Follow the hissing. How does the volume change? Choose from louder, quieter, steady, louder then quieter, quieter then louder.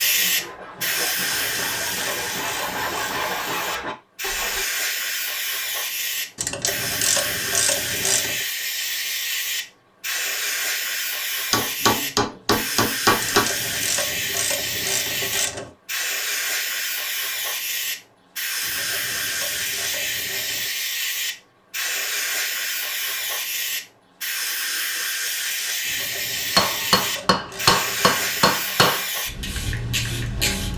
steady.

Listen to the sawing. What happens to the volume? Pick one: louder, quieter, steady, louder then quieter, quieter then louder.
louder.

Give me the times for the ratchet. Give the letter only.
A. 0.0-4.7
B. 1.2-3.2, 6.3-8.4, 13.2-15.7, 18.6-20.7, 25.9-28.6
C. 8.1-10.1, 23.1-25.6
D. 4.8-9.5
B.